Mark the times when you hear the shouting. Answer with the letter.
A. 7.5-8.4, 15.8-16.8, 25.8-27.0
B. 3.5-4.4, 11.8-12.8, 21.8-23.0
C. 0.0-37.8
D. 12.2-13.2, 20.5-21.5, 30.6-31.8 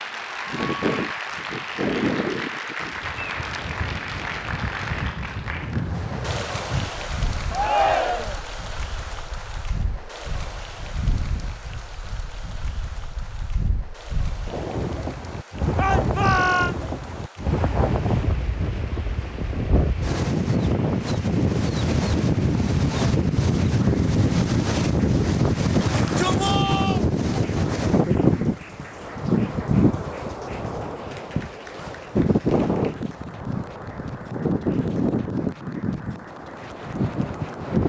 A.